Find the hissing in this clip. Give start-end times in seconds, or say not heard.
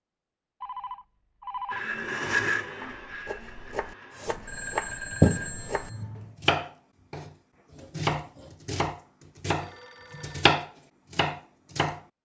4.1-6.3.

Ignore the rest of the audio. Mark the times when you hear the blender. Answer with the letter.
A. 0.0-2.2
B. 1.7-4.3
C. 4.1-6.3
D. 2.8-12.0
B.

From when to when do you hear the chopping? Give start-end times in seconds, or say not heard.
2.8-12.0.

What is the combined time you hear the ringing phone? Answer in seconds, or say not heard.
4 s.